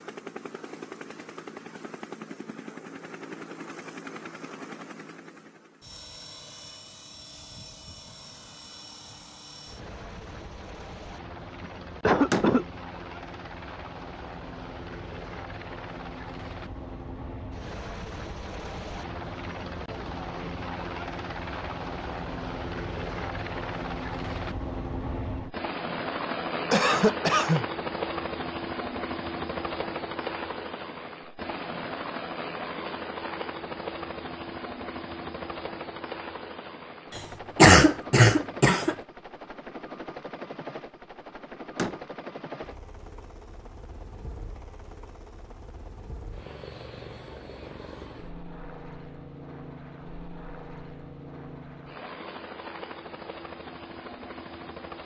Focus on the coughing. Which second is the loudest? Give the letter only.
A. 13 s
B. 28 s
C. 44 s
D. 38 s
D.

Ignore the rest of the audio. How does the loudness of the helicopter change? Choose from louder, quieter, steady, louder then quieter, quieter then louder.
louder then quieter.